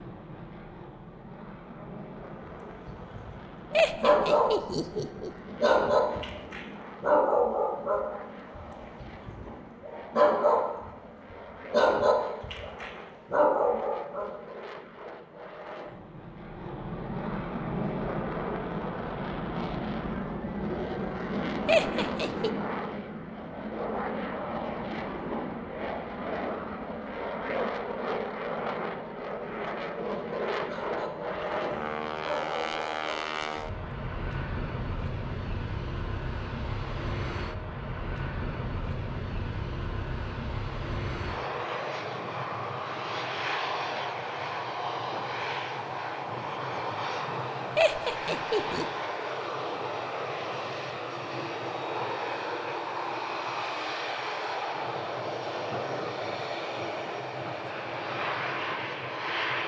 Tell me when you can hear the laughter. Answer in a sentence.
The laughter can be heard from 3.7 to 5.3 s, from 21.6 to 22.5 s and from 47.8 to 48.9 s.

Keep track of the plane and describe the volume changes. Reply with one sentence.
The volume of the plane goes up.